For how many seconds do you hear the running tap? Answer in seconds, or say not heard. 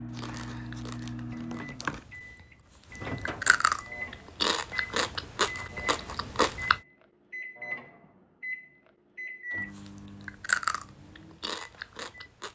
not heard.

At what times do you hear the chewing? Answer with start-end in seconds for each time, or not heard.
0.1-6.8, 9.6-12.5.